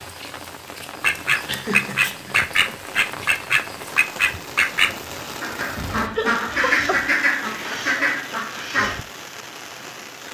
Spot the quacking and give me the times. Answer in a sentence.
You can hear the quacking from 1.0 to 9.0 s.